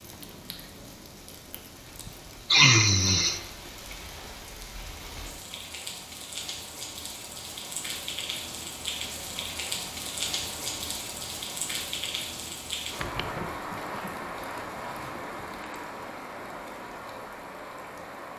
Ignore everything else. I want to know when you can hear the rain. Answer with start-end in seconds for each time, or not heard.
0.0-18.3.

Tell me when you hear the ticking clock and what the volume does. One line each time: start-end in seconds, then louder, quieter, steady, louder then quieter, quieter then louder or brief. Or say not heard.
not heard.